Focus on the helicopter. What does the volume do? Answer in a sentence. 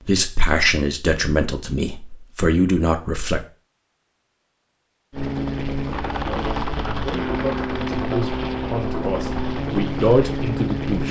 The volume of the helicopter stays about the same.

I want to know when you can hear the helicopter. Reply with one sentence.
The helicopter can be heard from 5.1 to 11.0 s.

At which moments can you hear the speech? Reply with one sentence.
The speech can be heard from 0.1 to 3.4 s and from 6.2 to 11.0 s.